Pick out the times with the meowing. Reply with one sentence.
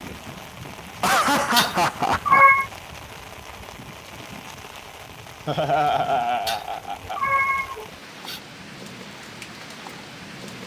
You can hear the meowing from 1.6 to 2.6 s and from 6.5 to 8.4 s.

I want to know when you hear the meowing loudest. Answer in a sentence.
The volume of the meowing peaks at 2 seconds.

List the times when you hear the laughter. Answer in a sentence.
You can hear the laughter from 1.0 to 2.5 s and from 5.5 to 7.4 s.